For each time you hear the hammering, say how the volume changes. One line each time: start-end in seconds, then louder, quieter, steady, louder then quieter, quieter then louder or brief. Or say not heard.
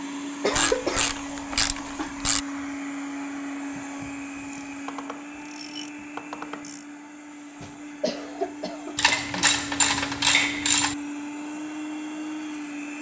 not heard.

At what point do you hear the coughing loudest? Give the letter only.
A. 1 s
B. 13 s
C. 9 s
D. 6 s
A.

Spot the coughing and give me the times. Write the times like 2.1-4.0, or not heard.
0.4-2.1, 7.6-9.2.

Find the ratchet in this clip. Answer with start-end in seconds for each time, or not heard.
0.5-2.4, 4.5-6.8, 8.9-10.9.